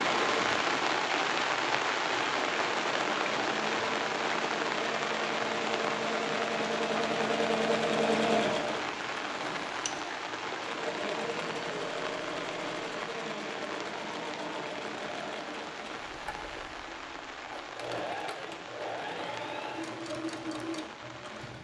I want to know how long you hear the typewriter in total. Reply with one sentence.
You can't hear the typewriter here.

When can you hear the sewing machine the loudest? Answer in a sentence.
The volume of the sewing machine peaks at 8 seconds.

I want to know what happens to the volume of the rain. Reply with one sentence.
The loudness of the rain goes down.